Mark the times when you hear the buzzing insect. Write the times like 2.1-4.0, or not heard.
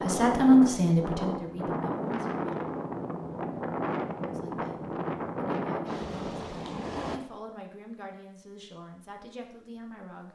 not heard.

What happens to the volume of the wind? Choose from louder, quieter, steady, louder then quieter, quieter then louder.
steady.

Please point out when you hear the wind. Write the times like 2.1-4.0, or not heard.
0.0-7.2.